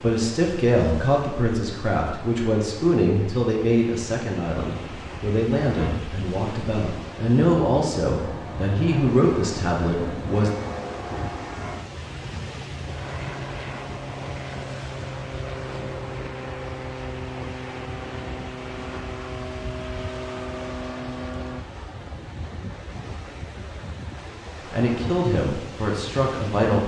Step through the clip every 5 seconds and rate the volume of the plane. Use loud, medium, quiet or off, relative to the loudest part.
off, loud, loud, loud, loud, off.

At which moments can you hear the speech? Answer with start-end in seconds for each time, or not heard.
0.0-10.5, 24.7-26.8.